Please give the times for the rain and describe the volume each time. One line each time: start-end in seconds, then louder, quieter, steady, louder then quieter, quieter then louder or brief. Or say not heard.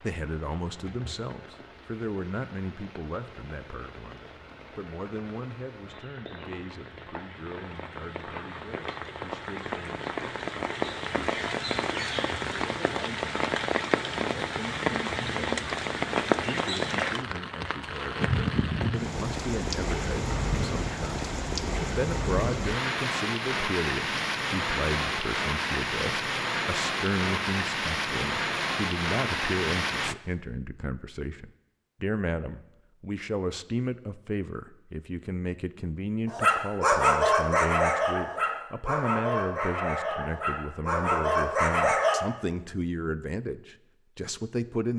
0.0-30.1 louder.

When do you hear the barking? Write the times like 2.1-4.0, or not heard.
36.2-42.2.